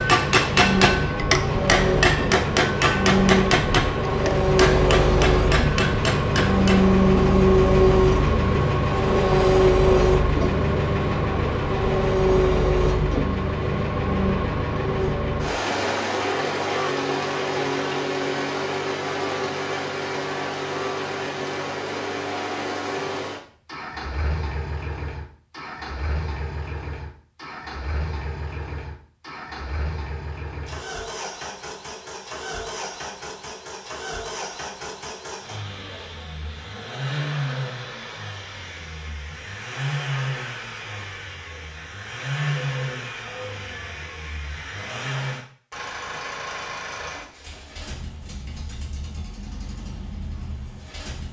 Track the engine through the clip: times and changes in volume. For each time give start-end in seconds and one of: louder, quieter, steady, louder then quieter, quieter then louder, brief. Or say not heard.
0.0-51.2 quieter.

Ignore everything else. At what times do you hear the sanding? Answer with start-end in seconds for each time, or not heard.
not heard.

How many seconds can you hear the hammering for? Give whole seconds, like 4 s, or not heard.
7 s.